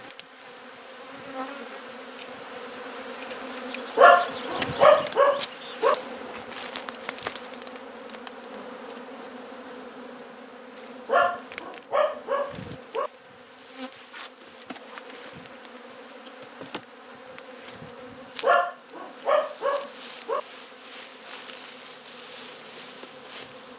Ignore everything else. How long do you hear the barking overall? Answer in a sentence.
The barking can be heard for 6 seconds in total.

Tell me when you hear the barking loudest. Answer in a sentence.
The volume of the barking peaks at 4 seconds.